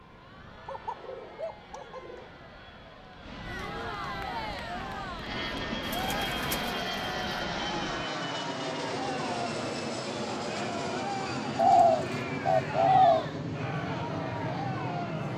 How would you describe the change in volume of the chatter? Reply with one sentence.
The volume of the chatter goes up.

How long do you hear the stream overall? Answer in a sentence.
The stream can be heard for 8 seconds in total.